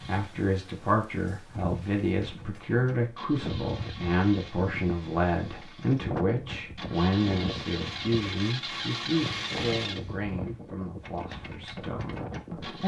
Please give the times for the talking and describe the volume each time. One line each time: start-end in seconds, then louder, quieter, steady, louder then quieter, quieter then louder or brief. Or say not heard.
0.1-12.8 quieter.